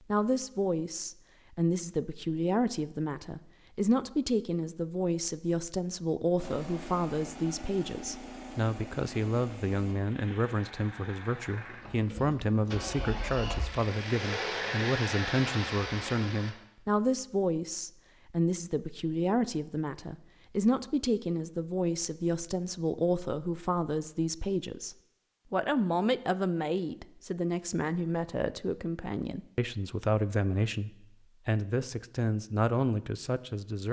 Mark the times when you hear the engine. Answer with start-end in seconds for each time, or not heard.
6.3-16.6.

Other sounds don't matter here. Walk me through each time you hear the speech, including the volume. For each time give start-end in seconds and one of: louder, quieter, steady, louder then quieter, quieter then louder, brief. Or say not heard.
0.1-33.8 steady.